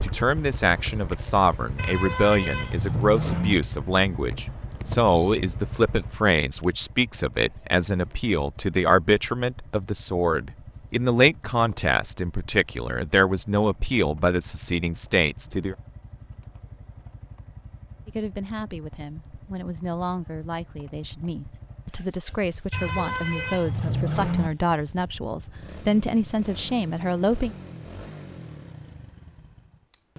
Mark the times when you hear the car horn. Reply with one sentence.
The car horn can be heard from 1.8 to 3.5 s and from 22.7 to 24.5 s.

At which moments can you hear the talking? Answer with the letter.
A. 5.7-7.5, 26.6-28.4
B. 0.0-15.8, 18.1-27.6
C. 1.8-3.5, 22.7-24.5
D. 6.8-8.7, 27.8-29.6
B.